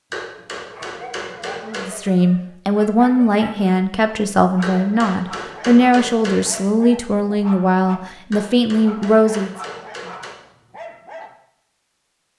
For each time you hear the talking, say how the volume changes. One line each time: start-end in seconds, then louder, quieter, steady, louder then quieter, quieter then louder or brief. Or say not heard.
1.6-9.5 steady.